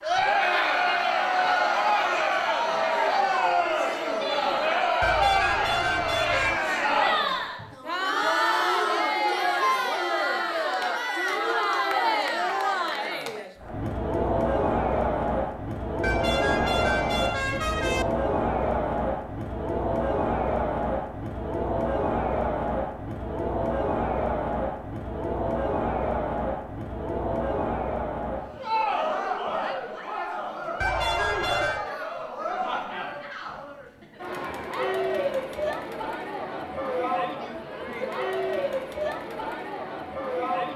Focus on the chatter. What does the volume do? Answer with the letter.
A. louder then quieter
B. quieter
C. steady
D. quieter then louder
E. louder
B.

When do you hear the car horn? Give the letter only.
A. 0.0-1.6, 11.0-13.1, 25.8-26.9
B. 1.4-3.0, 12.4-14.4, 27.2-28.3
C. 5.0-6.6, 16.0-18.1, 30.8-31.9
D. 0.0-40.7
C.